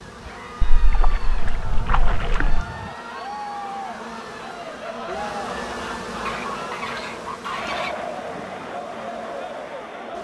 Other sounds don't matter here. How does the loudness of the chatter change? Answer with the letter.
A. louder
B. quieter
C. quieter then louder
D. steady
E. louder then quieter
A.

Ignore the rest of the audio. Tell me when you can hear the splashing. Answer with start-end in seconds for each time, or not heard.
0.6-2.6.